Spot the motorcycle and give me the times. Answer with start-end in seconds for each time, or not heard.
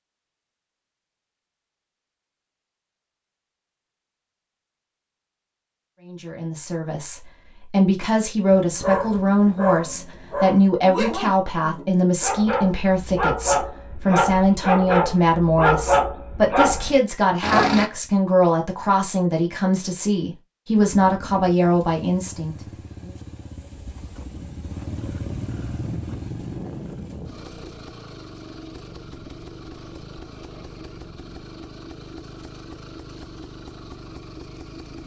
20.9-35.0.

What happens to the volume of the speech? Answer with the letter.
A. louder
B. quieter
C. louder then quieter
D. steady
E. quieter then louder
D.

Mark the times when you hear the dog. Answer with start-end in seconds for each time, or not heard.
8.5-17.9.